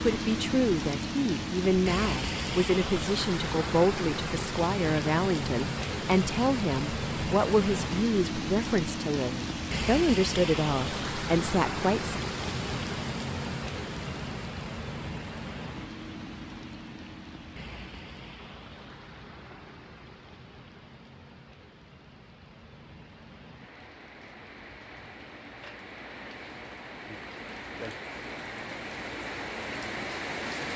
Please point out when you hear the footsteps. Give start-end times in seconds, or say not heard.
not heard.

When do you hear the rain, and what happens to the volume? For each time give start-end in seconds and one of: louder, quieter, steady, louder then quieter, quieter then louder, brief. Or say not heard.
0.0-30.7 quieter then louder.